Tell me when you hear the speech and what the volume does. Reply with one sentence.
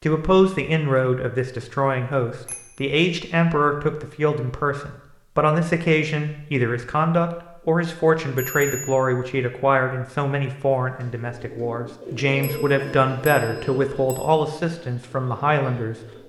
The speech can be heard from 0.0 to 15.9 s, at a steady volume.